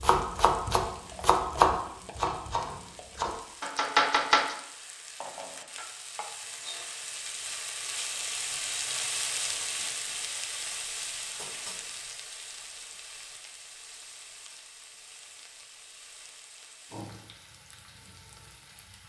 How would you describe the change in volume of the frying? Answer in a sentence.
The loudness of the frying goes up, then down.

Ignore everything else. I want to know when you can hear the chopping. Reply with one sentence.
The chopping can be heard from 0.0 to 4.5 s.